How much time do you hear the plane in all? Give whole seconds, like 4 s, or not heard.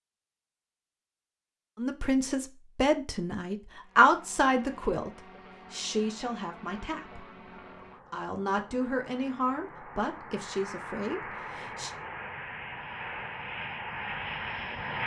11 s.